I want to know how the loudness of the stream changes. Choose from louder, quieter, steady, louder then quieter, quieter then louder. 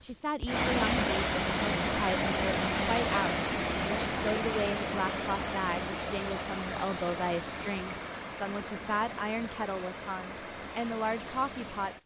quieter.